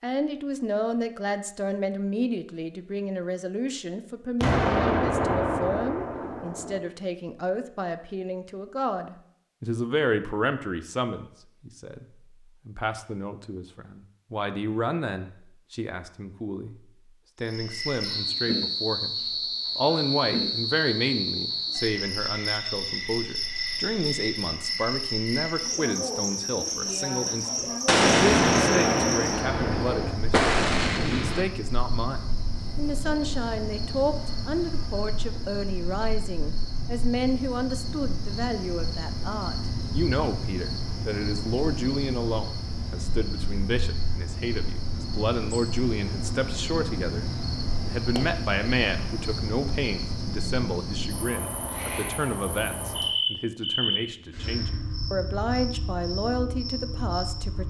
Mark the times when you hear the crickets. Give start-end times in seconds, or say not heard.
17.4-57.6.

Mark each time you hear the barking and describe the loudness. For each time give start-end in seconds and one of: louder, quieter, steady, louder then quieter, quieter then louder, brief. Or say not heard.
not heard.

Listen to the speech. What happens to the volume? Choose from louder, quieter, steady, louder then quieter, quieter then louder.
steady.